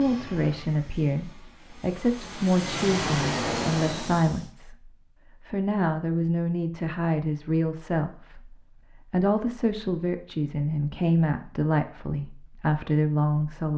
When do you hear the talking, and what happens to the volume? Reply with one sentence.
The talking can be heard from 0.0 to 13.7 s, at a steady volume.